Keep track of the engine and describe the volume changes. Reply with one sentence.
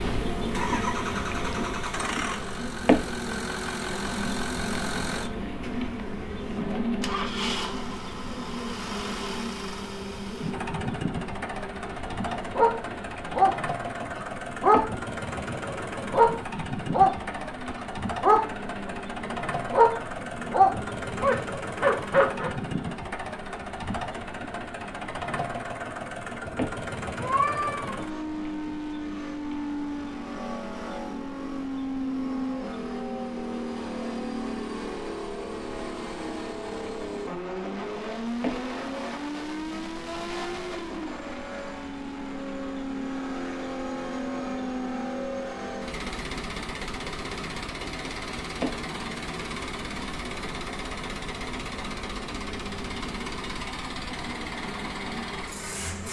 The loudness of the engine stays about the same.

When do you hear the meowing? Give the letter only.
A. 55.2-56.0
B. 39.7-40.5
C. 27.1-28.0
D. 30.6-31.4
C.